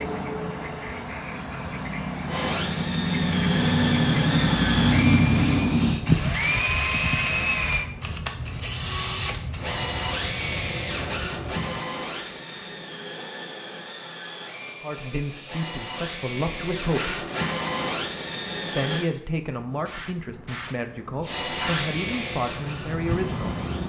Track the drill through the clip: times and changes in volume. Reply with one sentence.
You can hear the drill from 2.2 to 19.1 s, getting quieter then louder; and briefly from 21.2 to 23.8 s.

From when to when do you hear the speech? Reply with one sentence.
You can hear the speech from 14.8 to 17.2 s and from 18.8 to 23.6 s.